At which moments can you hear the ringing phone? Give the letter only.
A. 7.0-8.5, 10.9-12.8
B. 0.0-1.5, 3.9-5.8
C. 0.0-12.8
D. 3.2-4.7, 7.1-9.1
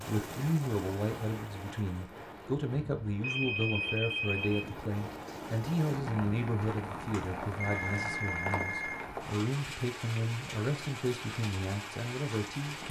D.